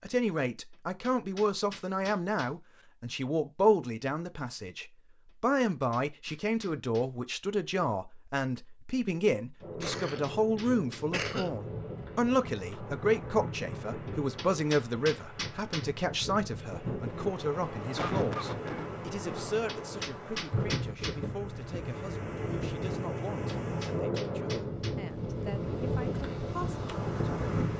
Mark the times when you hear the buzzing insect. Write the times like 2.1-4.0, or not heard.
not heard.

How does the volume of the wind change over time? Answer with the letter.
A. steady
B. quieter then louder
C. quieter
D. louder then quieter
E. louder
E.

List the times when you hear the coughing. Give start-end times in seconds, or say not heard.
9.6-11.6, 17.9-18.9.